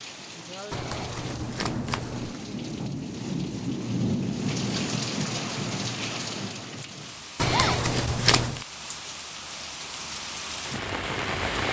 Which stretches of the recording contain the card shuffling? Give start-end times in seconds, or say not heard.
0.7-2.4, 7.3-8.7.